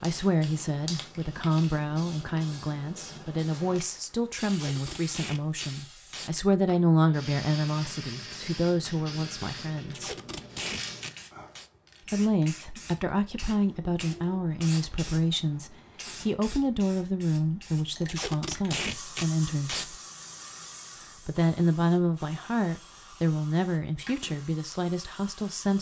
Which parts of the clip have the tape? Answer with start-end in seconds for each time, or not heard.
4.5-6.3, 9.9-11.7, 18.1-19.9.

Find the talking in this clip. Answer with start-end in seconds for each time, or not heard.
0.0-10.1, 12.1-19.9, 21.2-25.7.